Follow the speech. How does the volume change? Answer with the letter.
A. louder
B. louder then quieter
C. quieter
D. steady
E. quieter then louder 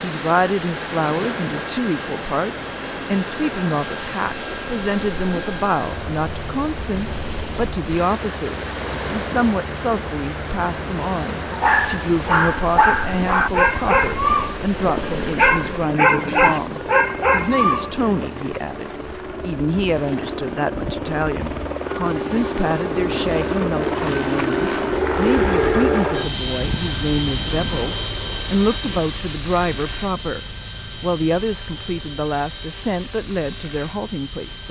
D.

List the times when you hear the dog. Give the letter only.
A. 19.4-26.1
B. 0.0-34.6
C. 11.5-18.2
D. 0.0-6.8
C.